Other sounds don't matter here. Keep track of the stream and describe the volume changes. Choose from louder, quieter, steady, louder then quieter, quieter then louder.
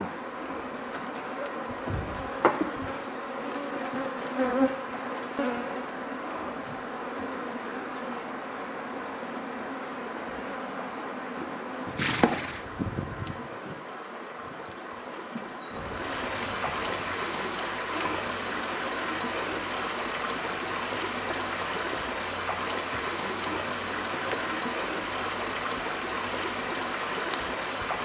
louder.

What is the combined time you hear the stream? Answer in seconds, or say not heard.
28 s.